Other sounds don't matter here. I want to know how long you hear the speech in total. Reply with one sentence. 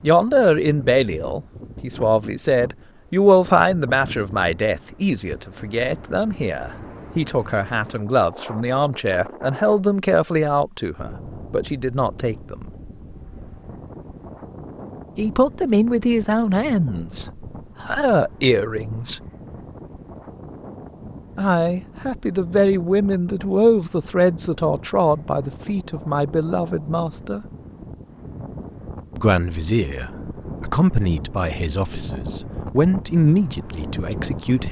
You can hear the speech for 28 seconds altogether.